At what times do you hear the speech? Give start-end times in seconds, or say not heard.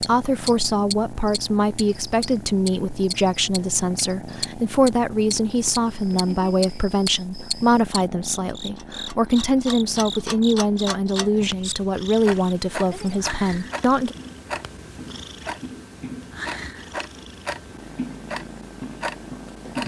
0.0-14.2.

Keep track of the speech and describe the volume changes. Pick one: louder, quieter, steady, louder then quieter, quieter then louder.
steady.